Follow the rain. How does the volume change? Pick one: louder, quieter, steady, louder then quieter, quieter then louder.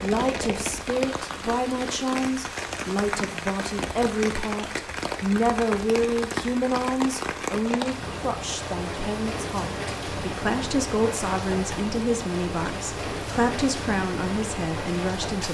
steady.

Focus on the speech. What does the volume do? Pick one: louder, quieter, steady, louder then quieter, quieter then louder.
steady.